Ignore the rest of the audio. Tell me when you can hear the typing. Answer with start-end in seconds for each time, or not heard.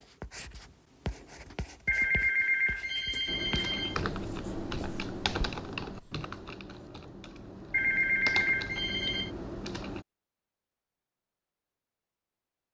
3.2-10.1.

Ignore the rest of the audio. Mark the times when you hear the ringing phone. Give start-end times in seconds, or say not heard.
1.9-4.0, 7.7-9.3.